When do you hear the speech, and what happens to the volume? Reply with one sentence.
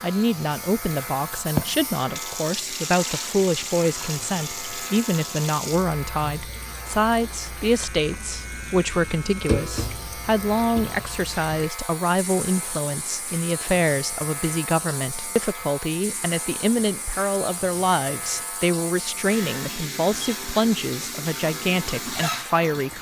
The speech can be heard from 0.0 to 22.9 s, at a steady volume.